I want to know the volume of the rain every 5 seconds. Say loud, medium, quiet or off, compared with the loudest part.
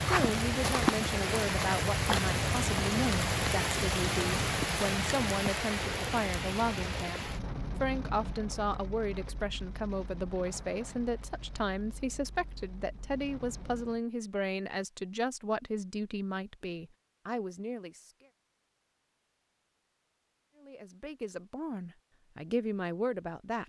loud, medium, quiet, off, off.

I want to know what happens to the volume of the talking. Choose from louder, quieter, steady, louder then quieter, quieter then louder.
steady.